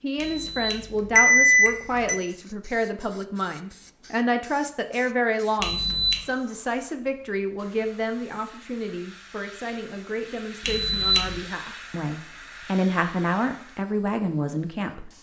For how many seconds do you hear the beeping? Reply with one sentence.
You can hear the beeping for 3 seconds altogether.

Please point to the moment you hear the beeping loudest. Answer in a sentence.
The loudest moment of the beeping is at 1 second.